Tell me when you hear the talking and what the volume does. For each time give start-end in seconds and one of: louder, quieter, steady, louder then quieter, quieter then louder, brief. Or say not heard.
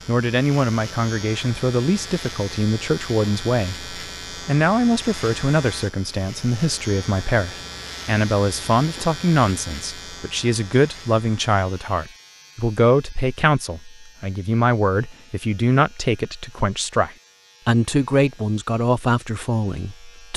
0.1-20.3 steady.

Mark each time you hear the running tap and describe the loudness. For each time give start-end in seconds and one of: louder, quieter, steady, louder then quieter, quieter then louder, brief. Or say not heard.
not heard.